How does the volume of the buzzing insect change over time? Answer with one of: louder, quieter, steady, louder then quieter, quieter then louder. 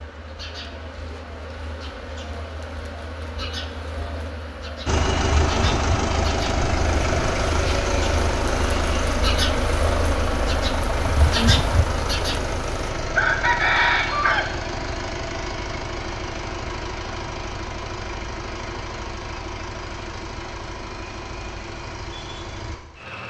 louder.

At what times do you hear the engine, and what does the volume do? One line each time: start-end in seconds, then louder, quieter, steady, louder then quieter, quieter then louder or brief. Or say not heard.
4.8-23.2 quieter.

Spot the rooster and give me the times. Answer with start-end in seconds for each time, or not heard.
13.2-14.5.